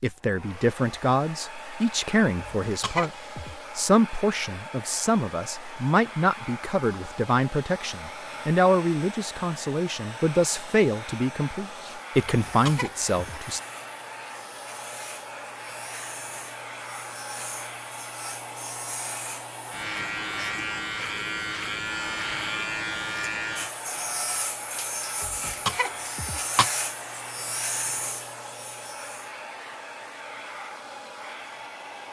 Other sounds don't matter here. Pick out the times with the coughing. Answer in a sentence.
The coughing can be heard from 2.4 to 3.5 s, from 12.4 to 13.4 s and from 25.2 to 26.7 s.